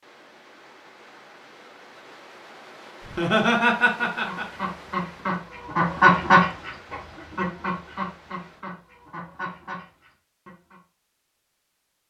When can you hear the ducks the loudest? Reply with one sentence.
The loudest moment of the ducks is at 6 seconds.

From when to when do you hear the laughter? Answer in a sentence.
You can hear the laughter from 3.0 to 4.7 s.